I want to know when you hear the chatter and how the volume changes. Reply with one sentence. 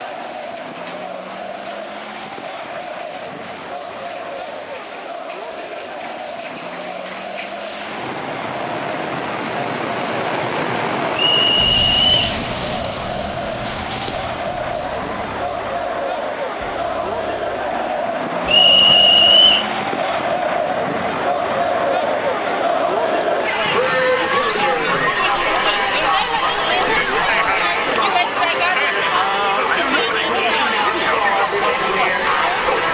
The chatter can be heard from 0.0 to 32.8 s, getting louder.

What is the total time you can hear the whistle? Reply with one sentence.
You can hear the whistle for 2 seconds altogether.